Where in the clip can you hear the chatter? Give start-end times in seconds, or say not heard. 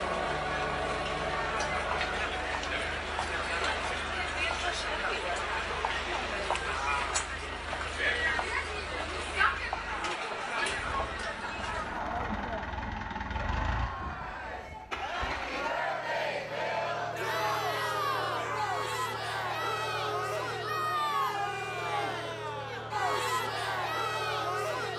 0.0-24.9.